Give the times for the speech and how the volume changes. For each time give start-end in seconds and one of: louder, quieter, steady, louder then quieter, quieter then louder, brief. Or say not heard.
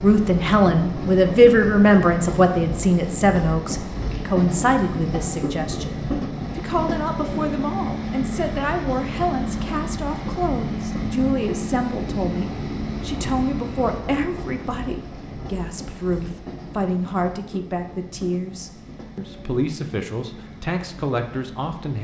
0.0-22.0 quieter.